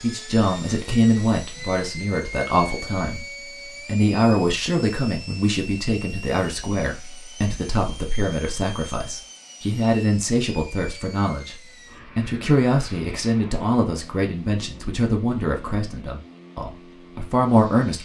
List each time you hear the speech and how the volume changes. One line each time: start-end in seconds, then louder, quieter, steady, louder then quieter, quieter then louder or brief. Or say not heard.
0.0-17.9 steady.